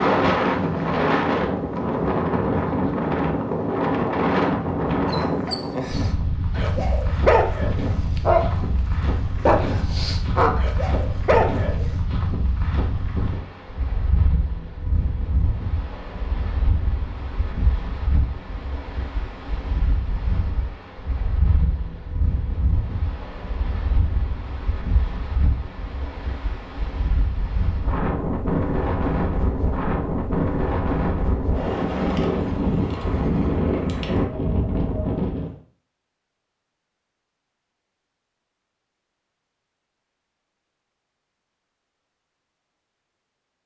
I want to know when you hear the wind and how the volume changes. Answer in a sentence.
You can hear the wind from 0.0 to 35.5 s, getting quieter then louder.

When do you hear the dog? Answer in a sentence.
You can hear the dog from 5.0 to 8.7 s and from 9.4 to 11.8 s.